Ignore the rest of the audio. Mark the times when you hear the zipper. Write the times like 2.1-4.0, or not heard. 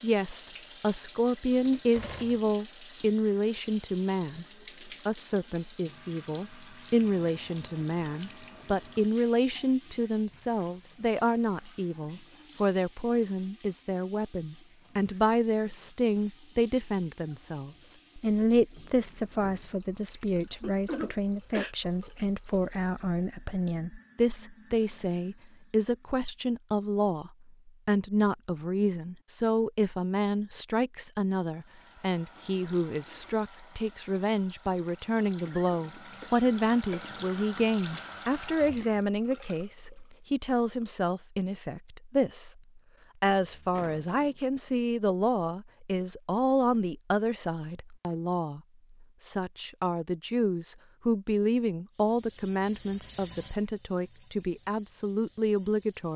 not heard.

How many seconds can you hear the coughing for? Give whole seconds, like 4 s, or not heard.
3 s.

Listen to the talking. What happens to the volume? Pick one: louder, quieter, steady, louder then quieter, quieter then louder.
steady.